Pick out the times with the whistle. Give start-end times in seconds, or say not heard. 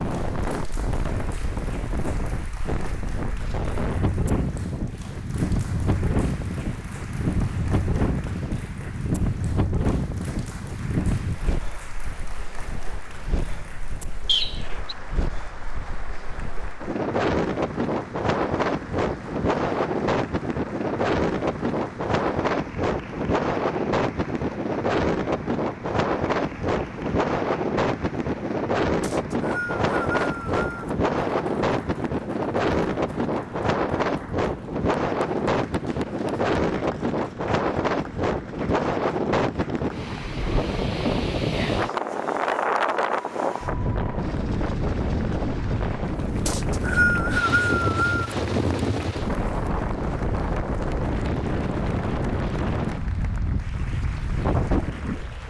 14.2-14.9, 29.0-30.9, 46.5-48.2.